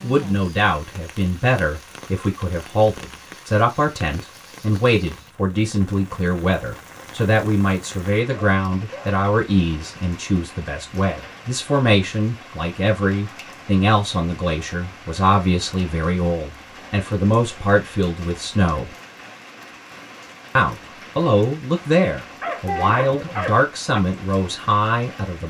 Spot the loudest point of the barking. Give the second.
23 s.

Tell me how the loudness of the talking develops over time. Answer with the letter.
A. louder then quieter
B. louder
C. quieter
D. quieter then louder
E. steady
E.